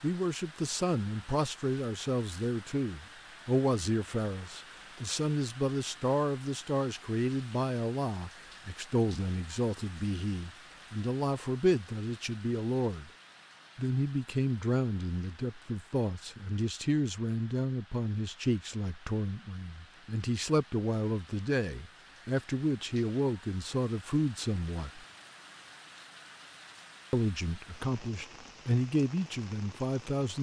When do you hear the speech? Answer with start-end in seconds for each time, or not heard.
0.0-13.1, 13.8-25.0, 27.1-30.3.